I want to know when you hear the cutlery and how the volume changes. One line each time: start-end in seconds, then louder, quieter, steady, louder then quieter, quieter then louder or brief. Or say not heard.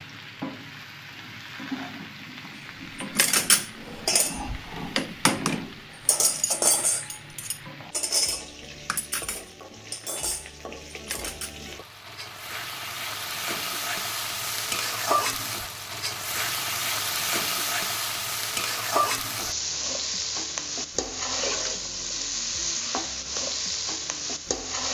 3.0-11.6 quieter.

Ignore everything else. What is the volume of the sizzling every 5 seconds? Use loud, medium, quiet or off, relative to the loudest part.
medium, quiet, medium, loud, loud.